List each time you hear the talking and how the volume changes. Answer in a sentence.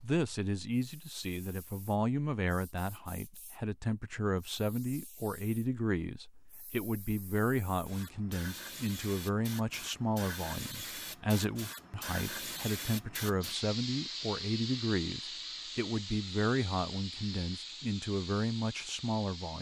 The talking can be heard from 0.0 to 19.5 s, at a steady volume.